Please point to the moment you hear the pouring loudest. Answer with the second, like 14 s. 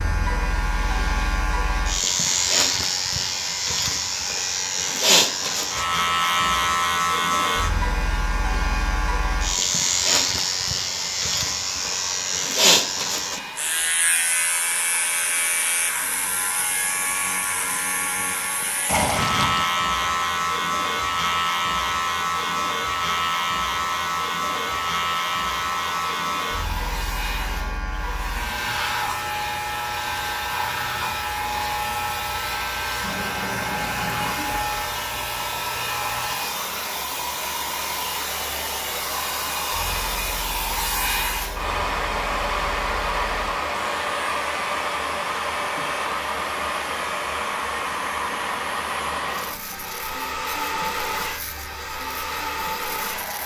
19 s.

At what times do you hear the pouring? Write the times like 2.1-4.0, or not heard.
18.9-19.6, 33.0-34.5.